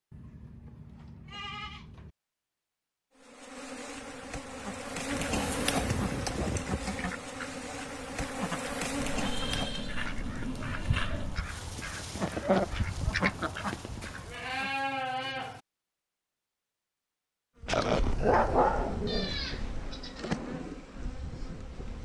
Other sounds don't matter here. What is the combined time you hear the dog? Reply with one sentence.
The dog can be heard for 2 seconds in total.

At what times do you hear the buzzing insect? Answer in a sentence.
You can hear the buzzing insect from 3.1 to 10.0 s and from 17.6 to 21.9 s.